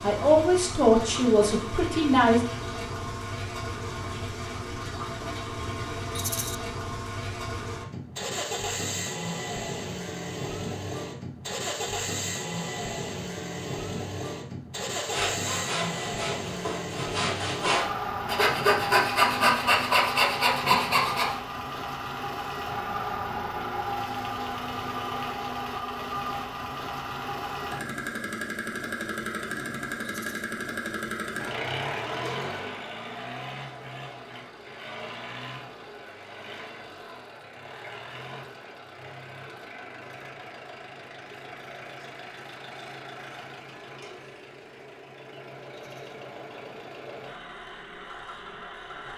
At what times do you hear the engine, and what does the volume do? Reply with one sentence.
The engine can be heard from 0.0 to 49.1 s, getting quieter.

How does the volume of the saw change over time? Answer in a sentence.
The volume of the saw goes up.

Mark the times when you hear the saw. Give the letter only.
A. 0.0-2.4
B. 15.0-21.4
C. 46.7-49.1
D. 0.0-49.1
B.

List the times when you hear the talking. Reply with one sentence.
You can hear the talking from 0.0 to 2.4 s.